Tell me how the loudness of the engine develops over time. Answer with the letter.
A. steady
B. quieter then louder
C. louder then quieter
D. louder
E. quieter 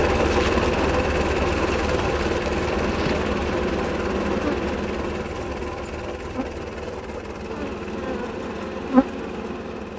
E.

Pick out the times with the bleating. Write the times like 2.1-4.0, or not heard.
not heard.